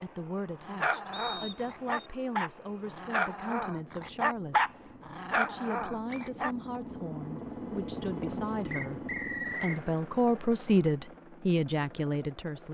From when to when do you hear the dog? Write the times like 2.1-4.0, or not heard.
0.6-6.5.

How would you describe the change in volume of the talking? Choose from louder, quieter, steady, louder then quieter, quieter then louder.
louder.